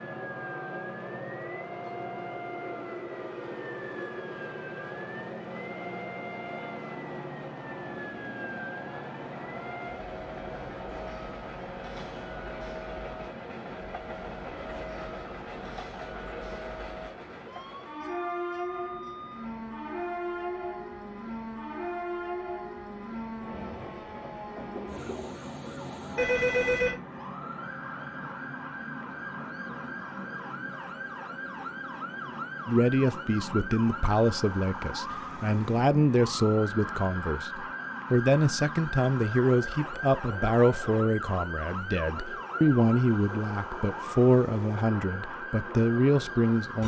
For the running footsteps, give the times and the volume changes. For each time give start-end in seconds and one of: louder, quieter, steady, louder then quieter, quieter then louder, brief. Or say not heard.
not heard.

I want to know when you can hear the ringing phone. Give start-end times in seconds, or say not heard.
26.1-26.9.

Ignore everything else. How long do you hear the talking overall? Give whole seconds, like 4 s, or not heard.
14 s.